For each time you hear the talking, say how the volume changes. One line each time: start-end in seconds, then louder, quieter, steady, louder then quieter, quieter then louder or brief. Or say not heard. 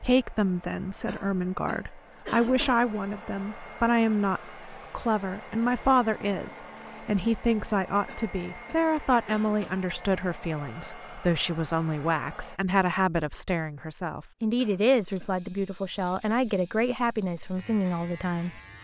0.0-18.6 steady.